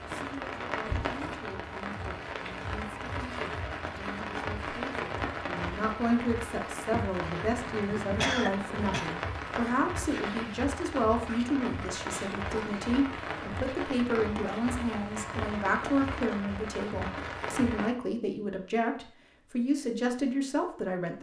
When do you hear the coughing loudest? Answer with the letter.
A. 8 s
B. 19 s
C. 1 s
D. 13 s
A.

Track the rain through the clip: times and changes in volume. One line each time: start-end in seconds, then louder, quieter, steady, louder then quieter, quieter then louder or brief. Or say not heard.
0.0-17.9 steady.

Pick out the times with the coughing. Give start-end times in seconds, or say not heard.
6.9-9.1.